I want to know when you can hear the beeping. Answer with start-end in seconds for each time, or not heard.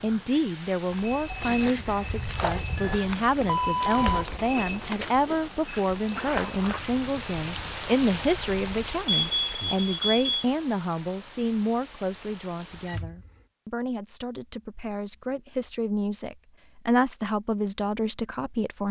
2.8-4.2, 9.2-10.4, 12.7-13.3.